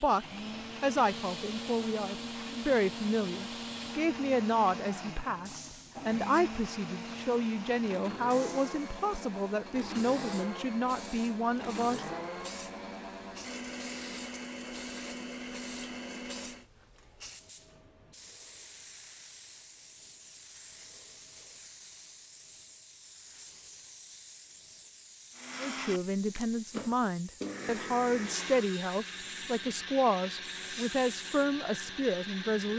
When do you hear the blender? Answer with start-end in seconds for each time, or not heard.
0.0-16.6, 25.3-32.7.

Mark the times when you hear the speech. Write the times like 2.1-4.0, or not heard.
0.0-12.2, 25.6-32.7.